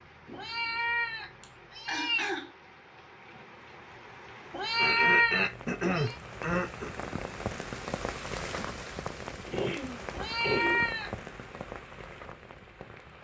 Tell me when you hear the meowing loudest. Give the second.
5 s.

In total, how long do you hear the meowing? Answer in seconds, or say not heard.
5 s.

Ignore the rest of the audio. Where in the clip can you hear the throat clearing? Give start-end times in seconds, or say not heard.
1.4-2.5, 4.8-6.9, 9.4-10.8.